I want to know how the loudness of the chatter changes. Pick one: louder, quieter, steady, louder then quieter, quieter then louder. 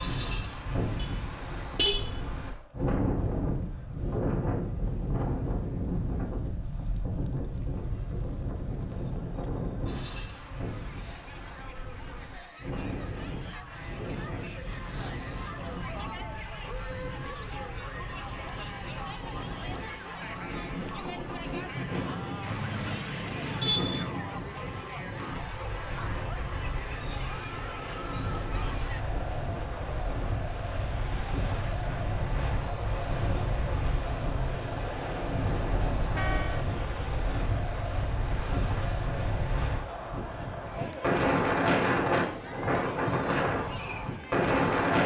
louder.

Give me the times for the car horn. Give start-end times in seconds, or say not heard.
0.9-2.4, 22.4-24.1, 35.8-36.6.